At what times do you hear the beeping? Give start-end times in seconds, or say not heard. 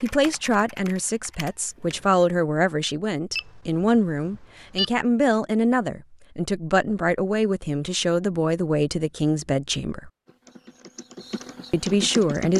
3.4-4.9.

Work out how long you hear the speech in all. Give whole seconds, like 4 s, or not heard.
11 s.